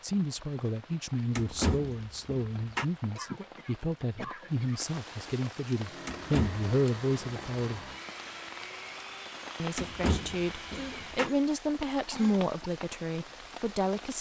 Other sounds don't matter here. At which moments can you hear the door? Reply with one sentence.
The door can be heard from 1.4 to 2.9 s, from 6.0 to 6.7 s and from 9.8 to 11.3 s.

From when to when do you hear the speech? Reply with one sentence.
You can hear the speech from 0.0 to 7.8 s and from 9.6 to 14.1 s.